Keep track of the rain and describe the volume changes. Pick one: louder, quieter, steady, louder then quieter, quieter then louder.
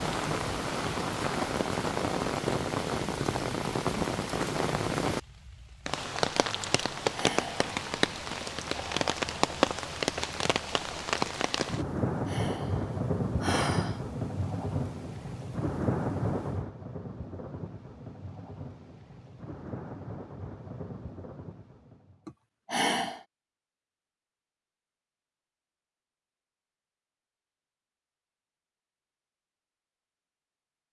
quieter.